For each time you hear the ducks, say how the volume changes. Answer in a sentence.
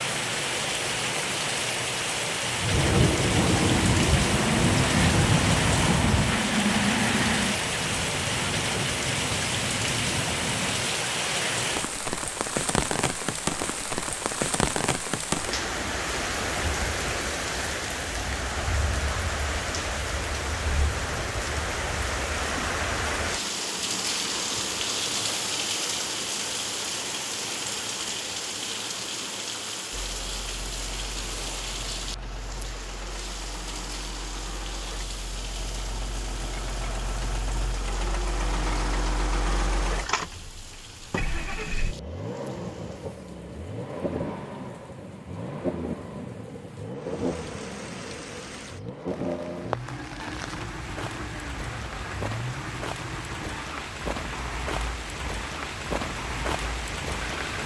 The ducks can be heard from 2.4 to 10.9 s, getting quieter.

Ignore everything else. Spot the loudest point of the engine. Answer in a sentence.
The loudest moment of the engine is at 7 seconds.